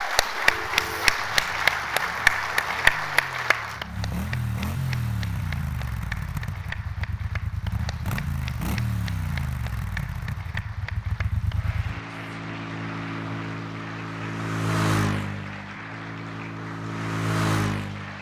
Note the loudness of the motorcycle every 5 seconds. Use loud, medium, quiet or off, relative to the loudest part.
medium, loud, loud, loud.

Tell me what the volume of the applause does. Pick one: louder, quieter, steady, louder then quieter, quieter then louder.
quieter.